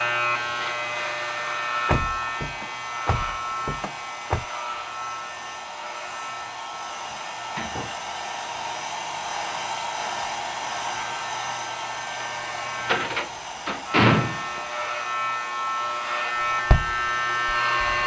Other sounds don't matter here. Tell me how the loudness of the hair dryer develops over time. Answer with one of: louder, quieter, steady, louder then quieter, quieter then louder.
louder then quieter.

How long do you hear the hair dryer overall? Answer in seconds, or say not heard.
18 s.